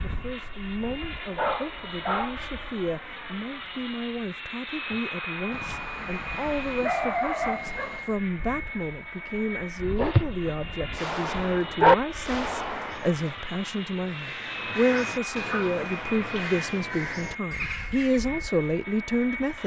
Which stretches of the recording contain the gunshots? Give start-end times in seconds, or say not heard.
10.9-13.4.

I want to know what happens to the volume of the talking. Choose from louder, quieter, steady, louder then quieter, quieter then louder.
louder.